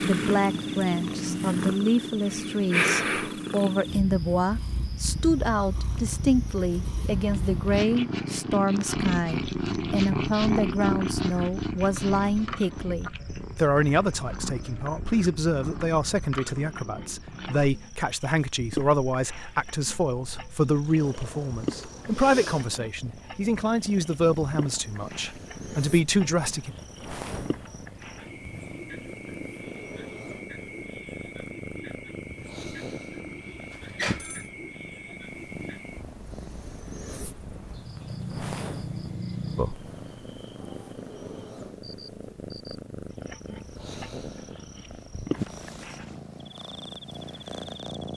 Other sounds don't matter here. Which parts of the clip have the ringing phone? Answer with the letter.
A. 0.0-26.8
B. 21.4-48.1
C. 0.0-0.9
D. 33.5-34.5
D.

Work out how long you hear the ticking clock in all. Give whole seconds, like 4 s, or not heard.
not heard.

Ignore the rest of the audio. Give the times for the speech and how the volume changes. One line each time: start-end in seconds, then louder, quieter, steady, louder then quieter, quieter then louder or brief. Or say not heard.
0.0-26.8 steady.